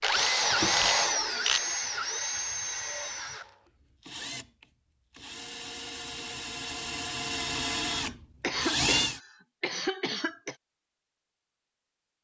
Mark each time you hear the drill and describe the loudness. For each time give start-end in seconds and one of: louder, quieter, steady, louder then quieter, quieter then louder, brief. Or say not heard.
0.0-9.2 quieter then louder.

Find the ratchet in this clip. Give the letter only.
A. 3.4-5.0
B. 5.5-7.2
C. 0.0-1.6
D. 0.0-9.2
C.